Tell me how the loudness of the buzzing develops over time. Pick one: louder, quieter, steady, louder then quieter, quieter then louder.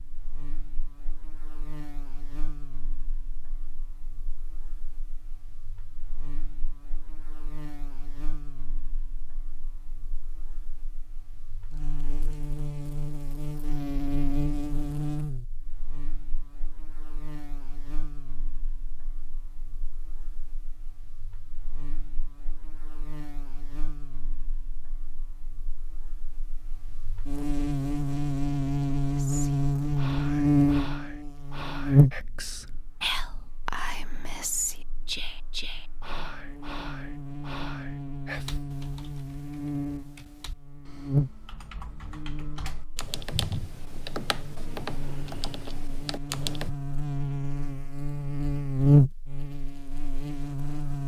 louder.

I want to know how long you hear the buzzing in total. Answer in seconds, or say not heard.
51 s.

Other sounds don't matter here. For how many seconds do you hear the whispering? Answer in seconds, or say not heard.
10 s.